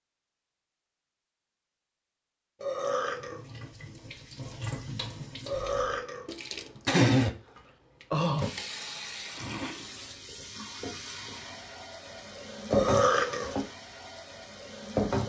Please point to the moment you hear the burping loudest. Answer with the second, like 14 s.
13 s.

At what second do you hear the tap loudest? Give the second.
7 s.